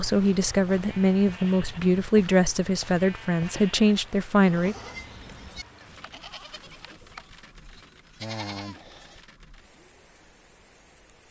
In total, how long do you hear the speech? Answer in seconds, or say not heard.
5 s.